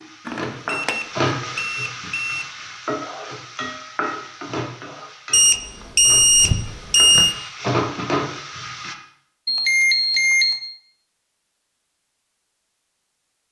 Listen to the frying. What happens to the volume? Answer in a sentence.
The loudness of the frying goes down, then up.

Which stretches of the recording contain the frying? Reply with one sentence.
The frying can be heard from 0.0 to 8.9 s.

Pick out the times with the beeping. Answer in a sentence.
You can hear the beeping from 0.2 to 2.5 s, from 5.3 to 7.3 s and from 9.4 to 10.7 s.